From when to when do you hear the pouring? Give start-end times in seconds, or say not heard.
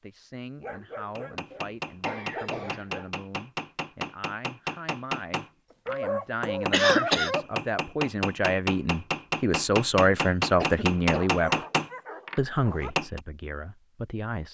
not heard.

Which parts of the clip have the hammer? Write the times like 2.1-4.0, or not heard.
1.1-13.2.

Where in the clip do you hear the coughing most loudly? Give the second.
7 s.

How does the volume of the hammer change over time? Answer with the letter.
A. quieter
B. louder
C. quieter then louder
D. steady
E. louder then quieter
B.